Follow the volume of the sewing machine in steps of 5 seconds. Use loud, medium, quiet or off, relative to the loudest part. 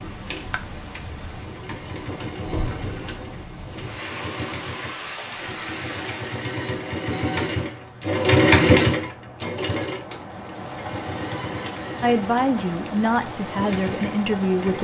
quiet, loud, quiet.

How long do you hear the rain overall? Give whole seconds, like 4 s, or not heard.
15 s.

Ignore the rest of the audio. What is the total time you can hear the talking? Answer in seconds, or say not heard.
3 s.